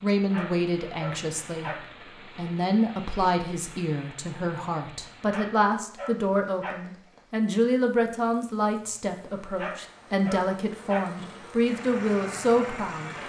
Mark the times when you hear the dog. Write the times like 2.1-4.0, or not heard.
0.3-1.9, 5.3-6.8, 9.6-11.2.